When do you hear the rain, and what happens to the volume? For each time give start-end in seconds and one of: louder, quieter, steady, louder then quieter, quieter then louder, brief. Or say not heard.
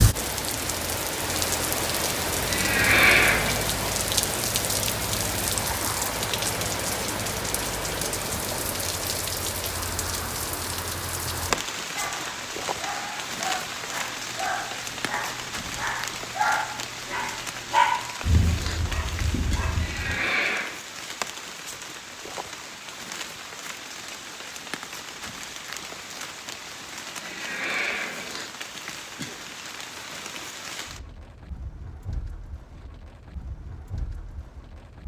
0.0-35.0 quieter.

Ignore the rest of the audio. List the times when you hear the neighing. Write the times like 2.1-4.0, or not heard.
2.5-3.6, 19.8-20.7, 27.2-28.4.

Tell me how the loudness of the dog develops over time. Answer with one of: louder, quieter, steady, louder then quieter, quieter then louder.
louder then quieter.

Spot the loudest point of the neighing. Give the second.
3 s.